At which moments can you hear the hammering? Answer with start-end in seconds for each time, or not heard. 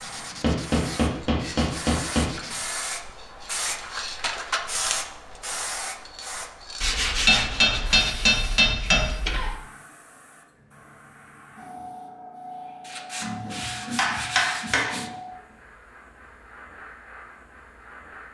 0.4-2.3, 7.2-9.1, 13.2-15.1.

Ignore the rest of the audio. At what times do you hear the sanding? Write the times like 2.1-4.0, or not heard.
0.0-2.6, 6.8-9.6, 12.8-15.1.